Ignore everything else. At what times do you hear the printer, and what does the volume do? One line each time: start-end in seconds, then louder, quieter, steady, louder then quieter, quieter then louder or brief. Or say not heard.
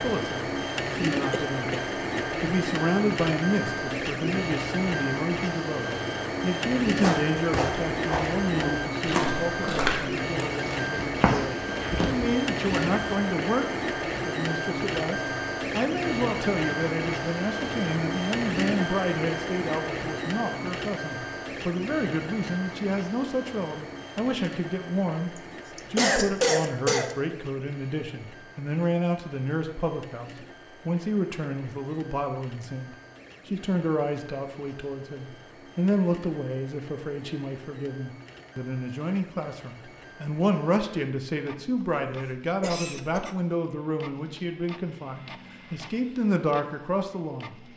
0.0-47.7 quieter.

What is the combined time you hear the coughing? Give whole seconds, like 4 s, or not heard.
4 s.